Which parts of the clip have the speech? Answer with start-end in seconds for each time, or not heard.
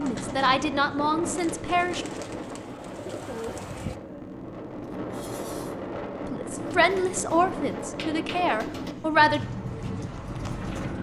0.0-2.0, 6.2-9.4.